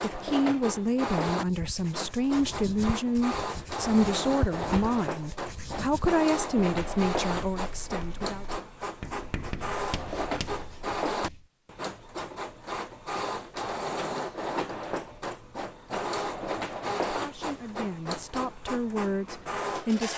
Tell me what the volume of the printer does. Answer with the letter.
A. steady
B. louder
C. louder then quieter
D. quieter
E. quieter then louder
A.